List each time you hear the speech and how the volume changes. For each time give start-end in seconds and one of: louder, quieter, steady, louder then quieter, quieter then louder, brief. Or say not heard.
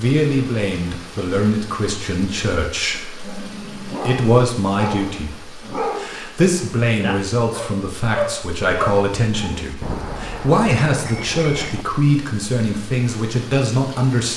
0.0-14.3 steady.